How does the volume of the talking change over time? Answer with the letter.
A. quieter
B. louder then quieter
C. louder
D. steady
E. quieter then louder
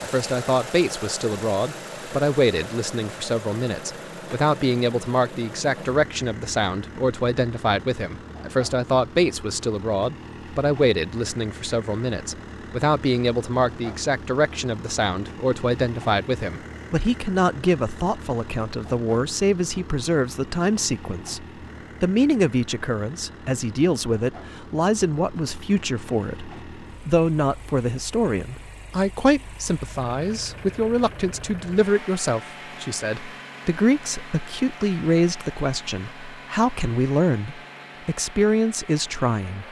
D.